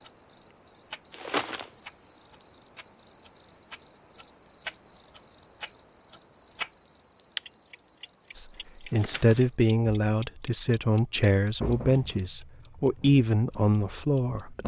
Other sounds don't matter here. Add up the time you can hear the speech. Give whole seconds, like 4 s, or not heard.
6 s.